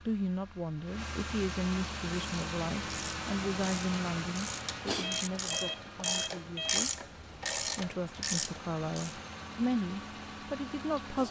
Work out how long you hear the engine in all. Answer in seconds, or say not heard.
11 s.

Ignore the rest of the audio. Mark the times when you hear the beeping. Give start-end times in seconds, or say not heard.
5.0-6.8.